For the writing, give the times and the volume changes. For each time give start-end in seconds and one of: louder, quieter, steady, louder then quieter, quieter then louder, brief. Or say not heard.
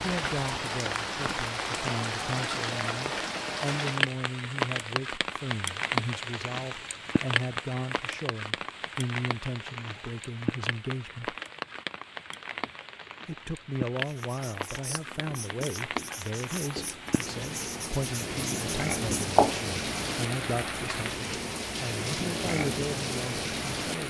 14.0-19.7 louder.